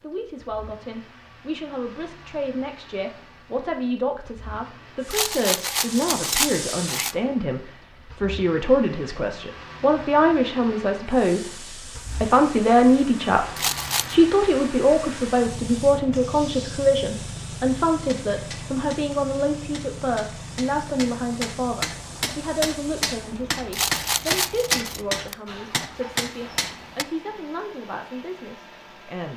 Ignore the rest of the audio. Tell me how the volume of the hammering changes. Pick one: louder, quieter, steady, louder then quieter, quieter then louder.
louder.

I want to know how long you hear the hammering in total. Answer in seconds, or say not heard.
9 s.